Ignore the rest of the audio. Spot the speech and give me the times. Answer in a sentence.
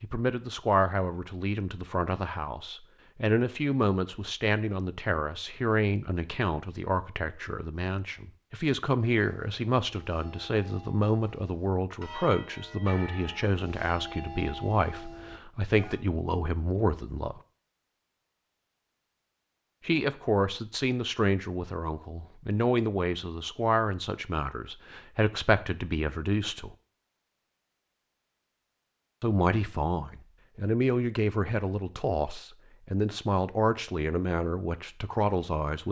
You can hear the speech from 0.0 to 17.4 s, from 19.9 to 26.8 s and from 29.2 to 35.8 s.